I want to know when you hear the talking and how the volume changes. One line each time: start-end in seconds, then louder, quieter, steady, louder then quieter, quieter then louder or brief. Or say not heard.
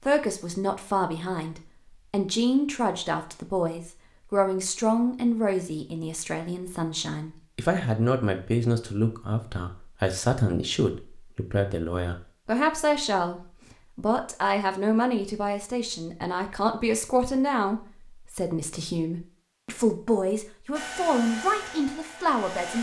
0.0-22.7 steady.